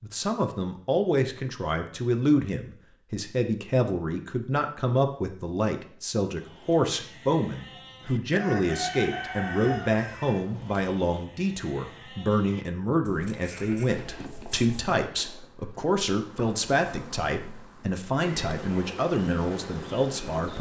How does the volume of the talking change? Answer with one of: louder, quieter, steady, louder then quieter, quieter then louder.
steady.